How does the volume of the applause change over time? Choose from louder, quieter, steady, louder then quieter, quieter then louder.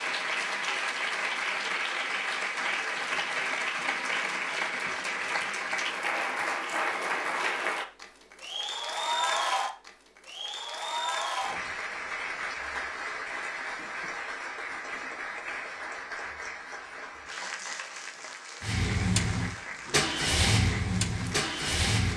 quieter.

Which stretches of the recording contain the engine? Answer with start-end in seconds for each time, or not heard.
18.6-22.1.